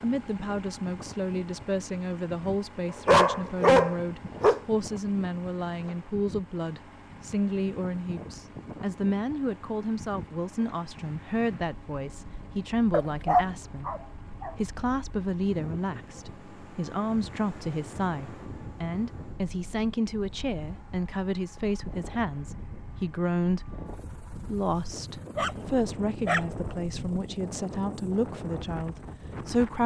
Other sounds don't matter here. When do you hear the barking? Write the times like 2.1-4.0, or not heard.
3.0-4.6, 12.9-14.5, 25.4-27.2.